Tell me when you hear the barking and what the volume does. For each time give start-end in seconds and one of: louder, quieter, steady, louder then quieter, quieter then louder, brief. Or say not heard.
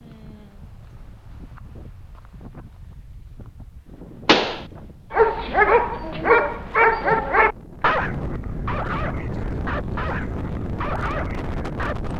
5.1-12.1 quieter.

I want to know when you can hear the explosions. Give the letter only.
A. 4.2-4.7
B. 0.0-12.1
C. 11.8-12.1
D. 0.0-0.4
A.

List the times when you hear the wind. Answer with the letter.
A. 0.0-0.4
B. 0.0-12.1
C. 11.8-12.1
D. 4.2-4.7
B.